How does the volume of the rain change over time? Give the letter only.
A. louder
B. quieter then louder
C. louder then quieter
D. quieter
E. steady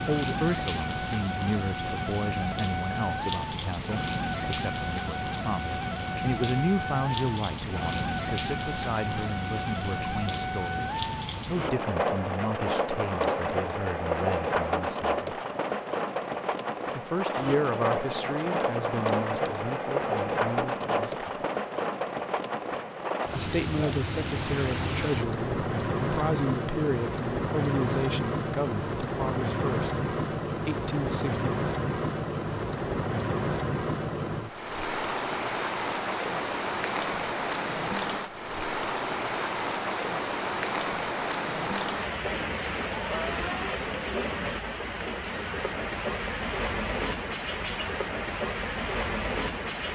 E.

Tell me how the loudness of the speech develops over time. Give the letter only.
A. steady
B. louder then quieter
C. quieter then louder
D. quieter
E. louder
A.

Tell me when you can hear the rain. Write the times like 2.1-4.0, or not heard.
0.0-49.9.